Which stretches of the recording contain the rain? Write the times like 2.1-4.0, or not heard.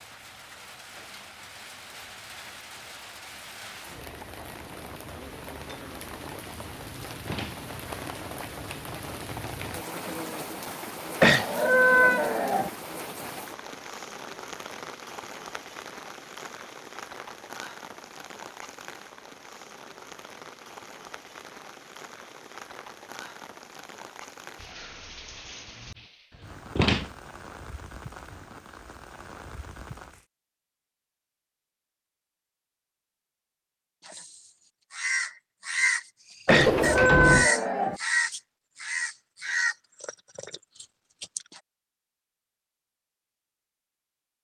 0.0-30.2.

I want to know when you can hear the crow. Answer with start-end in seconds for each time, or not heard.
34.0-41.6.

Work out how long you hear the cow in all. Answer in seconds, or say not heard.
3 s.